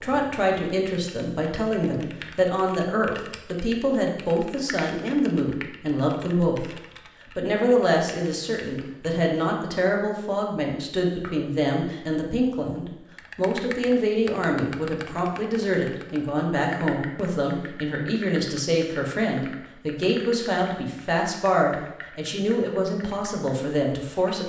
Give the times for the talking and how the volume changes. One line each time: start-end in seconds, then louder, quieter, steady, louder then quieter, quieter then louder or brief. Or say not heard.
0.0-24.4 steady.